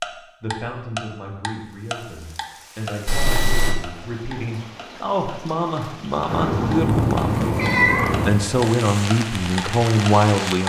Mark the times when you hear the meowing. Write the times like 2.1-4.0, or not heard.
3.0-3.8, 6.2-8.3.